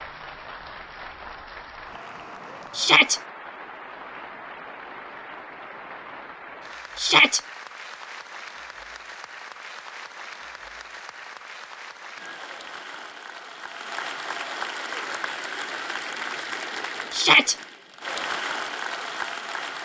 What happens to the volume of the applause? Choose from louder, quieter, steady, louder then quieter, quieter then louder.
louder.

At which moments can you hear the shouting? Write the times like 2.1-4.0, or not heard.
2.8-3.2, 7.0-7.4, 17.1-17.6.